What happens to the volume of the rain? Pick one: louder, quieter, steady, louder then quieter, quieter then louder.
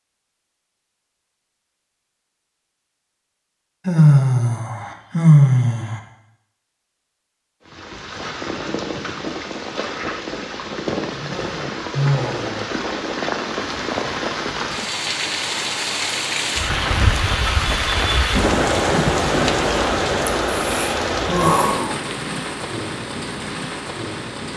louder then quieter.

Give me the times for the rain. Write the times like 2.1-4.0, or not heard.
7.7-24.5.